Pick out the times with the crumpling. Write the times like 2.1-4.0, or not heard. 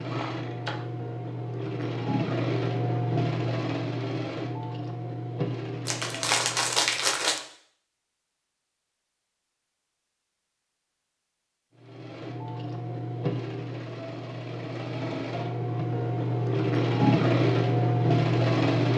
5.8-7.4.